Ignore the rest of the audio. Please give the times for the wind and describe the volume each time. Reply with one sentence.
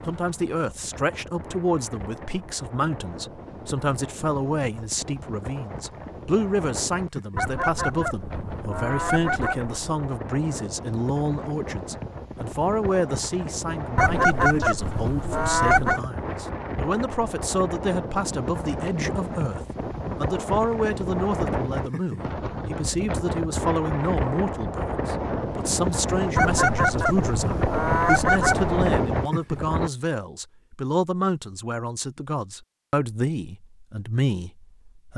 The wind can be heard from 0.0 to 29.9 s, getting louder.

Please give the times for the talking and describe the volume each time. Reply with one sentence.
You can hear the talking from 0.1 to 35.1 s, at a steady volume.